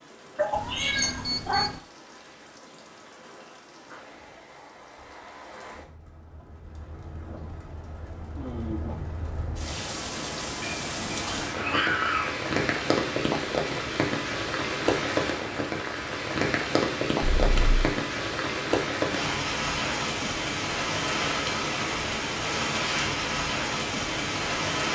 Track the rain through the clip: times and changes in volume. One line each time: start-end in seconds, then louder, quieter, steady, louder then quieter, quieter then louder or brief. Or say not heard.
0.0-24.8 louder.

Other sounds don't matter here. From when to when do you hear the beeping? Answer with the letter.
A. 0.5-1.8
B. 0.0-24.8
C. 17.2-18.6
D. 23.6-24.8
A.